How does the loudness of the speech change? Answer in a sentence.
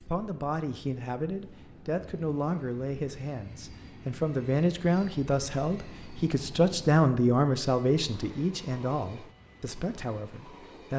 The volume of the speech goes up, then down.